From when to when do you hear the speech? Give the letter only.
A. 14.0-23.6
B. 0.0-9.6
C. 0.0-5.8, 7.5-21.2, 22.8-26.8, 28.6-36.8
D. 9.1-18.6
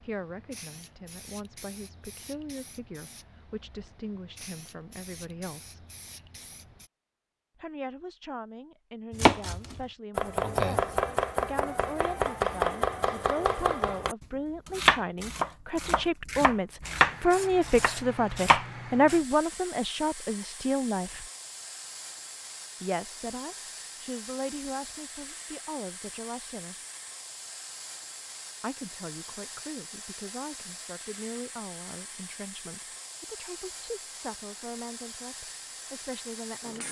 C.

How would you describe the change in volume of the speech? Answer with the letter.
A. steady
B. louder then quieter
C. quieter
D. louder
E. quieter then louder
B.